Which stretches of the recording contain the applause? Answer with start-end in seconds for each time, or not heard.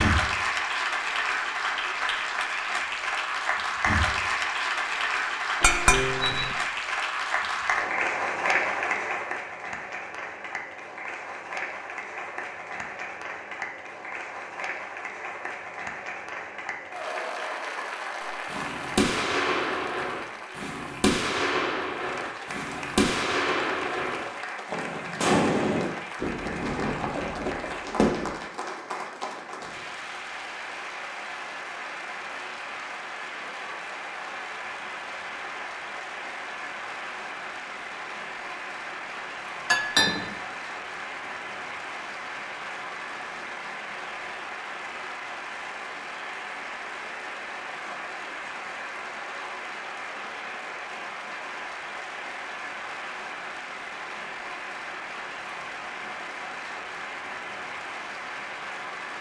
0.0-59.1.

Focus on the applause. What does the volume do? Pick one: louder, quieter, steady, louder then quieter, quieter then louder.
quieter.